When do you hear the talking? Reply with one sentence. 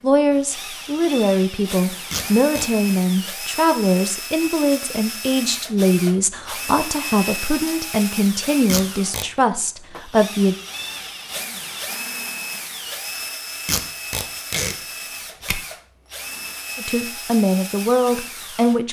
The talking can be heard from 0.0 to 10.6 s and from 16.8 to 18.8 s.